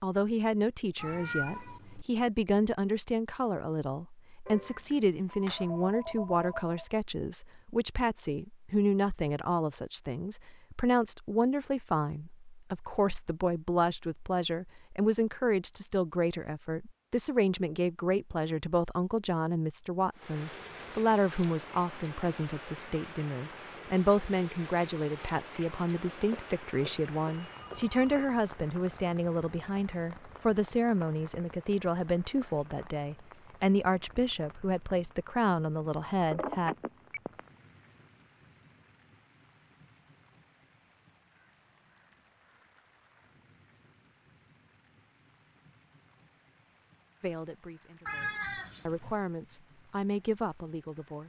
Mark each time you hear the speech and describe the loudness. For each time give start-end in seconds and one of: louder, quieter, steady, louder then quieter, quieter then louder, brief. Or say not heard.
0.0-36.8 steady
47.2-51.2 louder.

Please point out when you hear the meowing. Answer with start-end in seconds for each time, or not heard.
0.9-2.0, 48.0-49.1.